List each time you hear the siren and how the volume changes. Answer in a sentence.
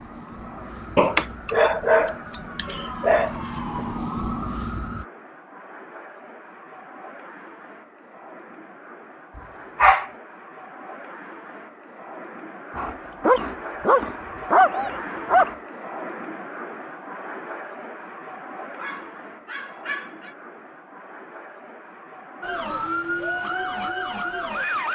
The siren can be heard from 0.0 to 5.0 s, getting louder; and briefly from 22.4 to 24.9 s.